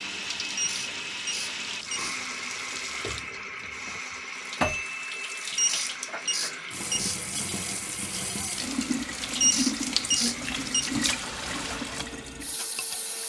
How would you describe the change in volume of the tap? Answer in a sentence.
The volume of the tap goes up.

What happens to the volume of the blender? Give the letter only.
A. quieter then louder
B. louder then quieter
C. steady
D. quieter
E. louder
D.